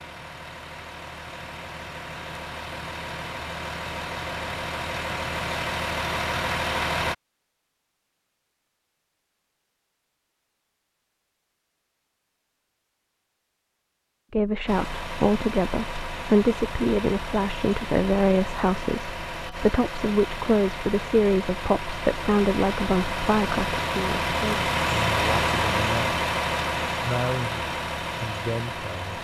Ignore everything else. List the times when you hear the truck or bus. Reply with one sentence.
You can hear the truck or bus from 0.0 to 7.2 s and from 14.7 to 29.1 s.